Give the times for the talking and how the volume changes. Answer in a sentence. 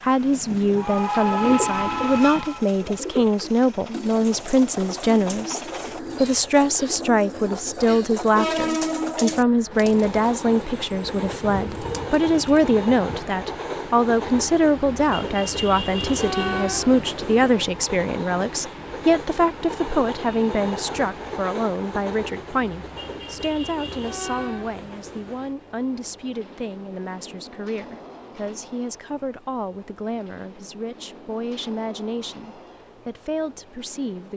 You can hear the talking from 0.0 to 34.3 s, getting quieter.